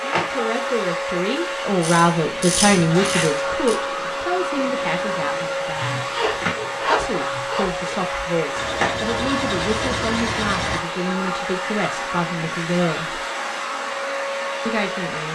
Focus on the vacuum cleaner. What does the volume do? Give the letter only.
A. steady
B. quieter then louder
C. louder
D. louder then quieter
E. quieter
A.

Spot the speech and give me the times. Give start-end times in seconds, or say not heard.
0.0-6.1, 6.8-13.2, 14.7-15.2.